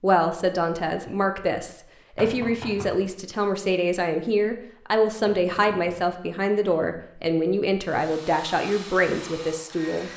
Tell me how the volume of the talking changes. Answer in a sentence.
The loudness of the talking stays about the same.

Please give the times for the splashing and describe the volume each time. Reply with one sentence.
You can't hear the splashing here.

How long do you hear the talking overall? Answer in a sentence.
You can hear the talking for 10 seconds altogether.